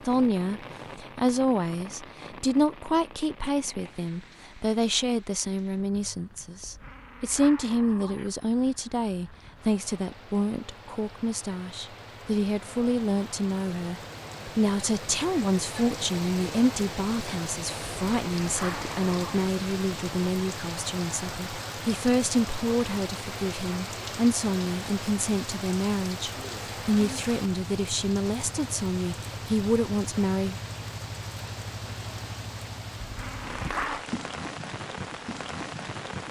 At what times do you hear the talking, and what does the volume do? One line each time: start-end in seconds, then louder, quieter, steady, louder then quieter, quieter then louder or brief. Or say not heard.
0.1-30.6 steady.